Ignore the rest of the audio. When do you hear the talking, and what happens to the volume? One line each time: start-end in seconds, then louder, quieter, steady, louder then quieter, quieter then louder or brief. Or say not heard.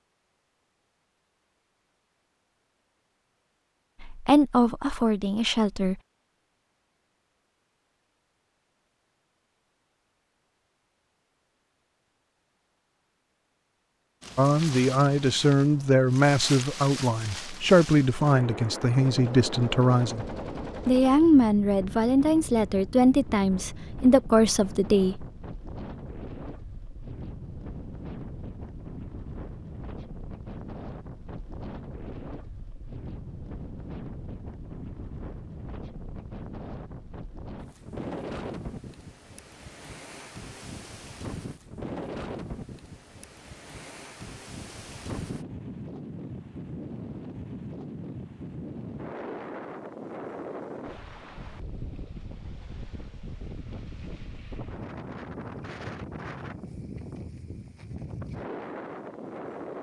4.0-6.0 brief
14.3-20.2 steady
20.9-25.2 steady.